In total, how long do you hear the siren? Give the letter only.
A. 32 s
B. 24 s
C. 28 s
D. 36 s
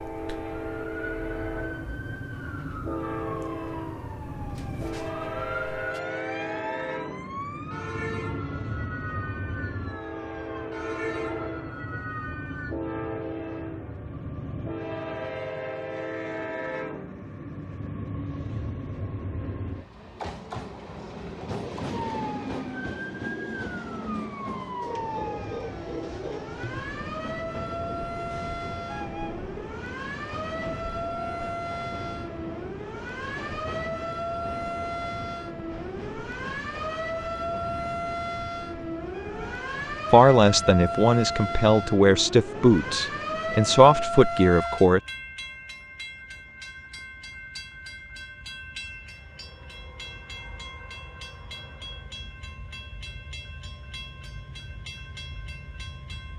D.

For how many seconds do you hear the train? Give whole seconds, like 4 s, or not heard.
56 s.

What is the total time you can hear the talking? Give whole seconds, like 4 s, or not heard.
5 s.